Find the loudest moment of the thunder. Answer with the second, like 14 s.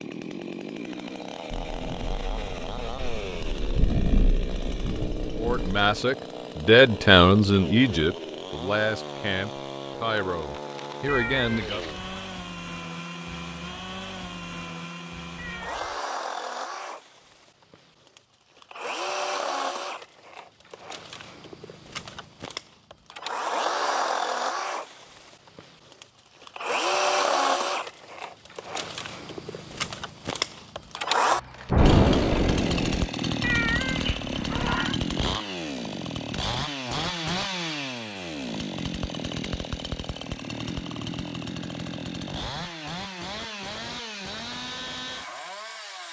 32 s.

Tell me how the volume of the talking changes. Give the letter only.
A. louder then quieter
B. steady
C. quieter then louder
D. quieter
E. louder
D.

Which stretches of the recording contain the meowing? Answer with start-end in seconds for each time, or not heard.
11.1-12.2, 15.3-16.0, 33.4-35.0.